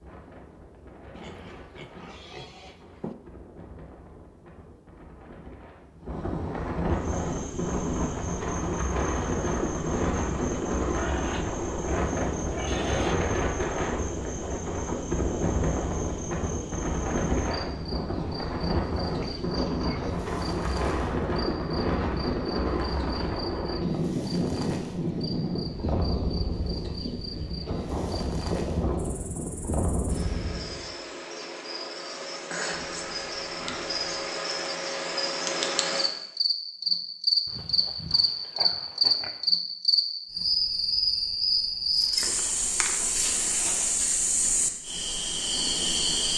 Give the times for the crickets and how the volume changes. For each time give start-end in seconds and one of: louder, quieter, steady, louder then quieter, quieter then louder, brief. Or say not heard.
6.9-46.3 louder.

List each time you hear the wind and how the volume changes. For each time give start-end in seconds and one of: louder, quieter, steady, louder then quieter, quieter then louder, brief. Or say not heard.
0.0-30.9 louder.